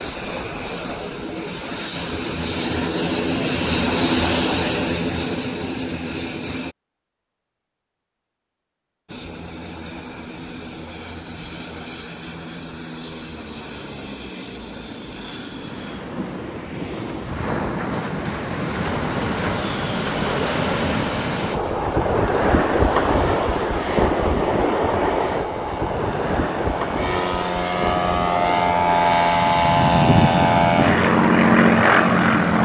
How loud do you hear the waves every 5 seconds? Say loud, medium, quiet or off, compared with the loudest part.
off, off, off, medium, loud, medium, medium.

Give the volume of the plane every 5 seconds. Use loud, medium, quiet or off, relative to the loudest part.
medium, quiet, quiet, quiet, quiet, medium, loud.